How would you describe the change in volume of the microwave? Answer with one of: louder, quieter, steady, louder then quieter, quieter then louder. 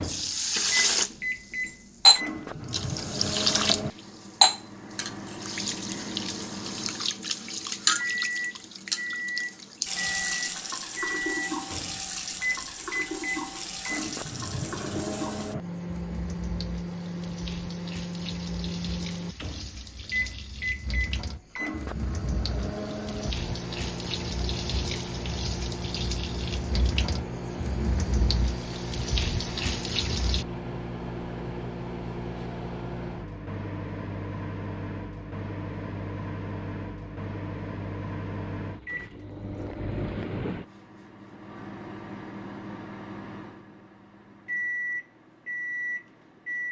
steady.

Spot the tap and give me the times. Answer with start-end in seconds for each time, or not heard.
0.0-30.4.